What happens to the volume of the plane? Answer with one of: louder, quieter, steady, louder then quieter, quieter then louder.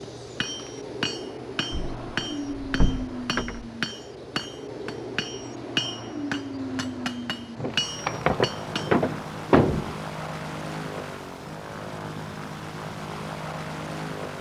steady.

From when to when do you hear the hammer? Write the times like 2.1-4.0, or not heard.
0.0-8.9.